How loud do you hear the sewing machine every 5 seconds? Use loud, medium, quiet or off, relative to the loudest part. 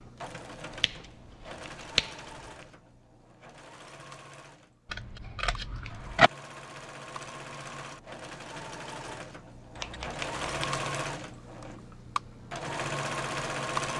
quiet, medium, loud.